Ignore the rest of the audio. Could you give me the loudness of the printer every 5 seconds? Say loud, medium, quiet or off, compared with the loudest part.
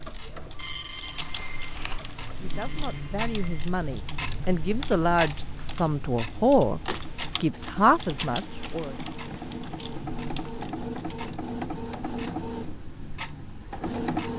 medium, medium, loud.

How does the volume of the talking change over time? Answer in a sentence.
The volume of the talking goes up.